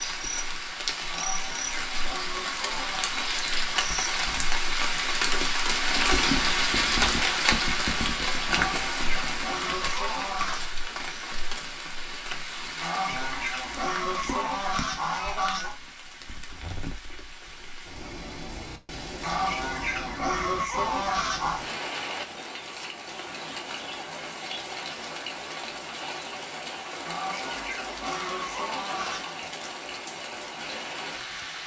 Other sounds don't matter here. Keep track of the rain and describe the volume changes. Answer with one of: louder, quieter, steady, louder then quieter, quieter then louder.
quieter.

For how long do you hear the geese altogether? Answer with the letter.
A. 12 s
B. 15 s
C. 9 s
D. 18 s
A.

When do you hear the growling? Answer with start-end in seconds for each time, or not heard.
not heard.